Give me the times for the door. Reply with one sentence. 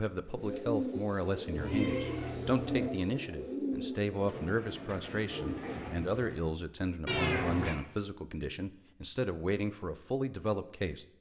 You can't hear the door here.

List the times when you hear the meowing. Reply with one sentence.
You can hear the meowing from 1.6 to 2.9 s and from 7.0 to 7.8 s.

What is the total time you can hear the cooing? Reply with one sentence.
You can hear the cooing for 6 seconds altogether.